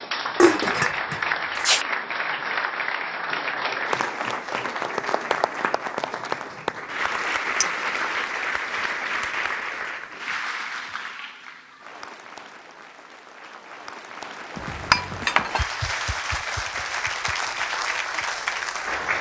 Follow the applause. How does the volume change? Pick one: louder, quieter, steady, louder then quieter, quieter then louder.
quieter then louder.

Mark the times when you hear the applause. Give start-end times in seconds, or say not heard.
0.0-19.1.